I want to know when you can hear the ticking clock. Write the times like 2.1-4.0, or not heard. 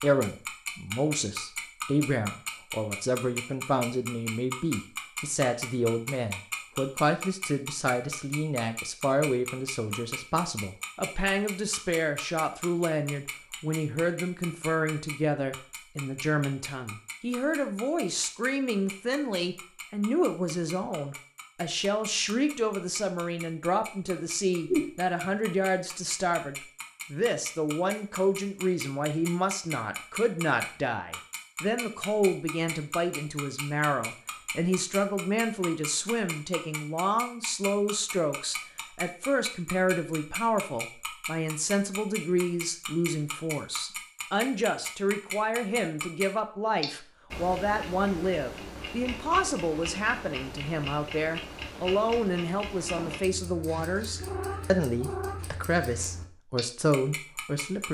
0.0-57.8.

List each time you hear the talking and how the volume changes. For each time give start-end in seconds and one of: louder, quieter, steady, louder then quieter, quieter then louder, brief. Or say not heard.
0.0-57.8 steady.